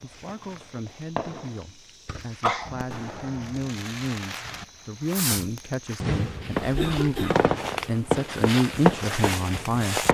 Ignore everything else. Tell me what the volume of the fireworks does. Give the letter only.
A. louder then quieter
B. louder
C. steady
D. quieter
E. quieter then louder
B.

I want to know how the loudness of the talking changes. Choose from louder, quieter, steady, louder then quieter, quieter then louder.
louder.